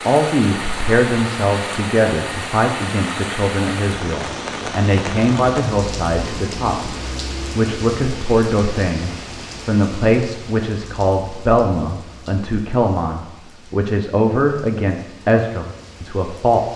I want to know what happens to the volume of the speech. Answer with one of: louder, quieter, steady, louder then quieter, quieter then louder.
steady.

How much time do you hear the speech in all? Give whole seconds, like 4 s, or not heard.
17 s.